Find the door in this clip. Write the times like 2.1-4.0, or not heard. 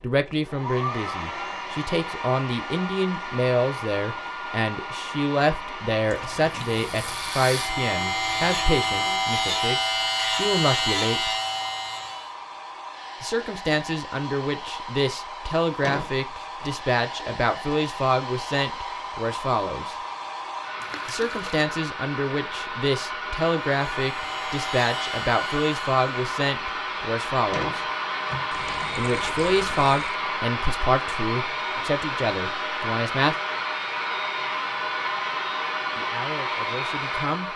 15.8-16.7, 27.5-28.5.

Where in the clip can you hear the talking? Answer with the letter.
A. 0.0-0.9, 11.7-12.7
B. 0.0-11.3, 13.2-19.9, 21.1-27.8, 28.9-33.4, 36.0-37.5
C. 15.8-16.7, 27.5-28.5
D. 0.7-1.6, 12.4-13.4
B.